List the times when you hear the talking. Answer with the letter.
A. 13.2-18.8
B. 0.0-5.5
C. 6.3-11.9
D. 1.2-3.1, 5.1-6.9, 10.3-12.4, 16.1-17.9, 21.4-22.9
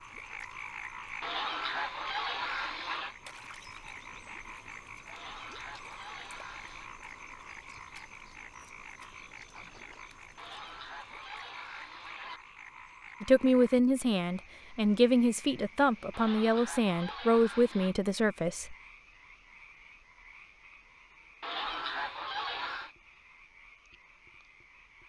A.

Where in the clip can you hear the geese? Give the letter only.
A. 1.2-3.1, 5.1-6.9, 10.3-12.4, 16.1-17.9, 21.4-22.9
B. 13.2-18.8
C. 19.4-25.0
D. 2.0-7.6
A.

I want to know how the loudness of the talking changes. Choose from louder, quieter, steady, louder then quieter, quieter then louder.
steady.